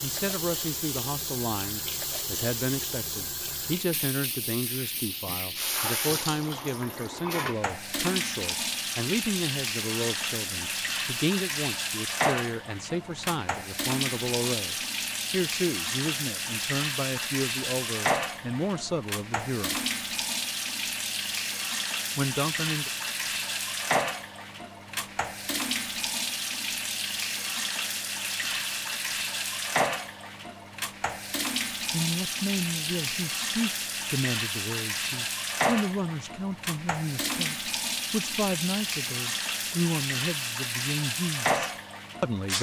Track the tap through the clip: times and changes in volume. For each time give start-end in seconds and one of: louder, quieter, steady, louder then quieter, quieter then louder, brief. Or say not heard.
0.0-42.5 steady.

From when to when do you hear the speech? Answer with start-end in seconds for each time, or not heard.
0.0-19.8, 22.1-22.9, 31.9-42.5.